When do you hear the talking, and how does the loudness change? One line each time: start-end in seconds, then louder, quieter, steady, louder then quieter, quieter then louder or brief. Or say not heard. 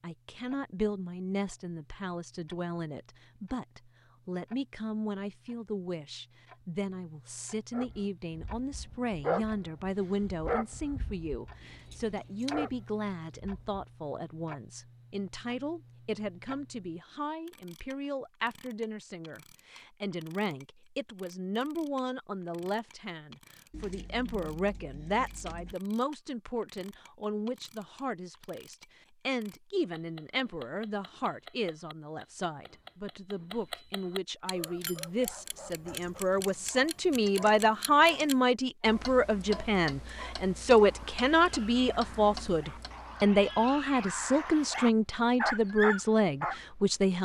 0.0-47.2 louder.